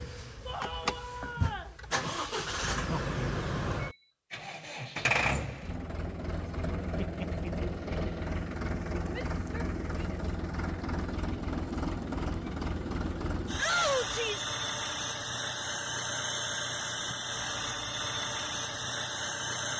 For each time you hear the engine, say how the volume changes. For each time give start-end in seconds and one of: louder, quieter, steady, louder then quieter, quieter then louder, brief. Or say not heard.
0.0-19.7 steady.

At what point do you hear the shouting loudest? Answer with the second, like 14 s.
14 s.